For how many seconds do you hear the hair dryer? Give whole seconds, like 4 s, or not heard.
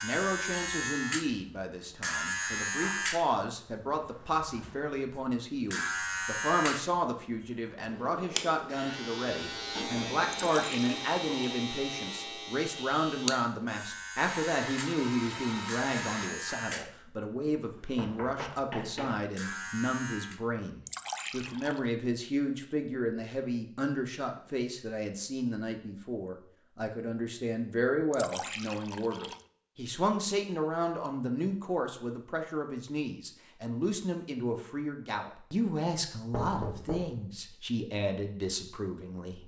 2 s.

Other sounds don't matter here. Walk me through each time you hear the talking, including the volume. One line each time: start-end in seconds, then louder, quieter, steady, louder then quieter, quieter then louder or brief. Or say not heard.
0.0-39.4 steady.